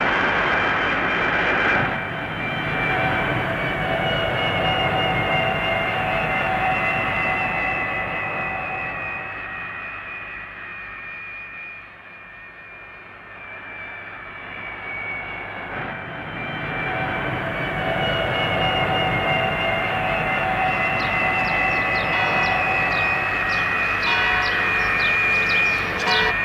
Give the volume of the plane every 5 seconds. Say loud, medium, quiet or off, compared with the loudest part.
loud, loud, quiet, loud, loud, loud.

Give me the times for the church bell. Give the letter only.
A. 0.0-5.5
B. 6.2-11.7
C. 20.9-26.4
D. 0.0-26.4
C.